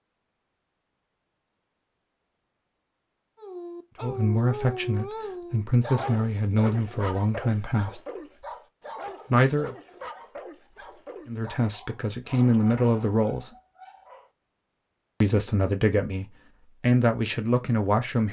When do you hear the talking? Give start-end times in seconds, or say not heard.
4.0-8.0, 9.3-9.8, 11.2-13.6, 15.2-18.2.